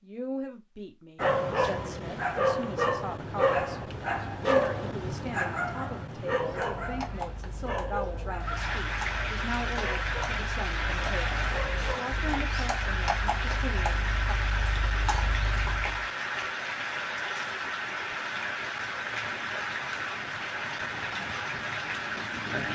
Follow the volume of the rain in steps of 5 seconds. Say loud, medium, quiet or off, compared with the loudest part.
off, loud, loud, loud, loud.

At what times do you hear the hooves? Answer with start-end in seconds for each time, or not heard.
6.4-16.1.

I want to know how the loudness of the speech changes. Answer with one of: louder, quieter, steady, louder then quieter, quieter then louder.
steady.